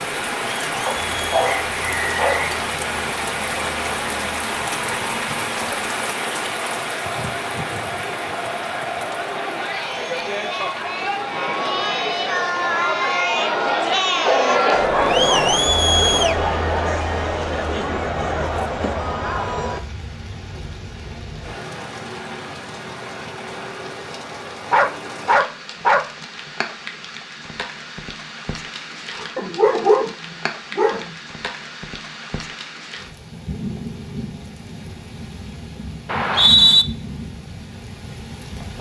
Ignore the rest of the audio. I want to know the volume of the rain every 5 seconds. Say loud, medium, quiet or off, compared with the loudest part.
loud, loud, medium, quiet, medium, medium, medium, medium.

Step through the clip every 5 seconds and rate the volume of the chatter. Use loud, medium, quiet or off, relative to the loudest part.
quiet, medium, loud, loud, off, off, off, off.